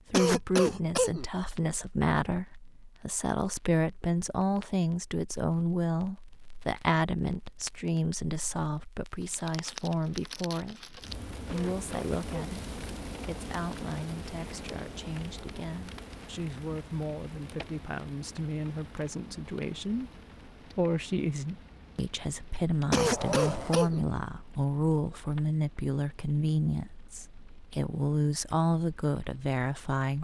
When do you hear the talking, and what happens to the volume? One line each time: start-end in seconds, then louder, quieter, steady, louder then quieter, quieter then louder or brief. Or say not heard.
0.1-30.1 quieter then louder.